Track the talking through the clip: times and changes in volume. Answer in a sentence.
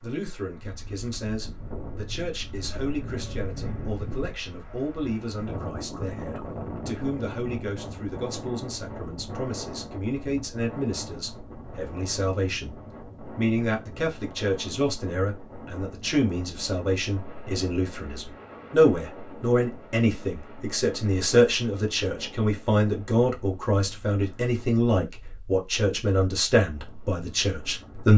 The talking can be heard from 0.0 to 28.1 s, getting louder.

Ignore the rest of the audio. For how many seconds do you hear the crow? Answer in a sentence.
The crow can't be heard in this clip.